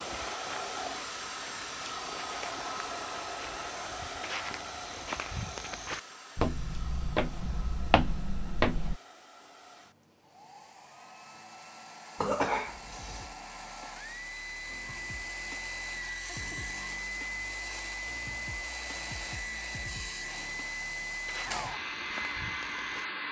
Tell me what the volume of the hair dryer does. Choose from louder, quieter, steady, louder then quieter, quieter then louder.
quieter then louder.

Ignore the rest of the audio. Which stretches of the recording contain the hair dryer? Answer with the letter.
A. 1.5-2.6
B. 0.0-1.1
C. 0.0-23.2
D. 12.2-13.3
C.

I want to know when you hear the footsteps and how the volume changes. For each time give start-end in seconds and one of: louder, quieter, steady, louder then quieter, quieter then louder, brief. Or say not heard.
0.1-9.0 louder
21.2-23.2 brief.